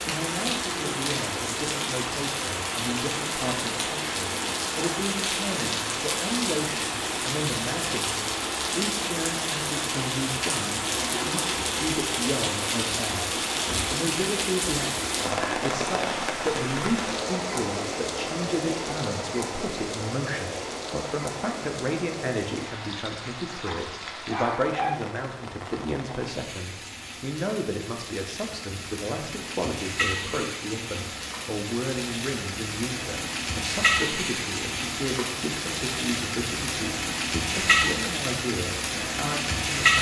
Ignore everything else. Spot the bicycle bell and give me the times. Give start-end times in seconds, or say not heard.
not heard.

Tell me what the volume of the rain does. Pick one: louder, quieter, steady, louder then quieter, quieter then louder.
quieter then louder.